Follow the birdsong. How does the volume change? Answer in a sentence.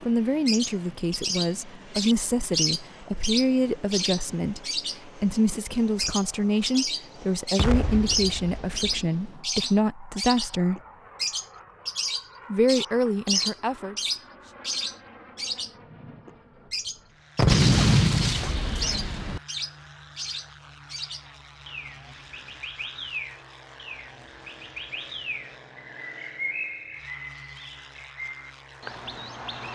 The volume of the birdsong goes down.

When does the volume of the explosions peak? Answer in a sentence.
The volume of the explosions peaks at 18 seconds.